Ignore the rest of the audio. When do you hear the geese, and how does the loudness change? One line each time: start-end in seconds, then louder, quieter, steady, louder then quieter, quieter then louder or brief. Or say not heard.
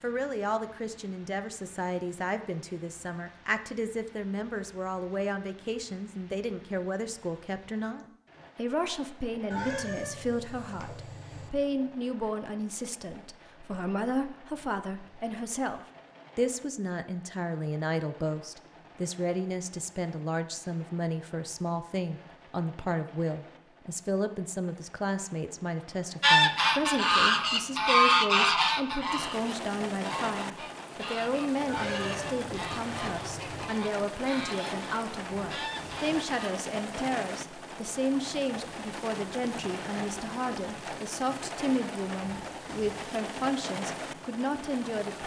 26.2-36.5 quieter.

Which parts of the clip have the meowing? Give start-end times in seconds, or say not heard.
9.5-11.5, 31.6-33.7.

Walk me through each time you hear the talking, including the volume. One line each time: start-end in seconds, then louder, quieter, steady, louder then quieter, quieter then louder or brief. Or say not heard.
0.0-45.2 steady.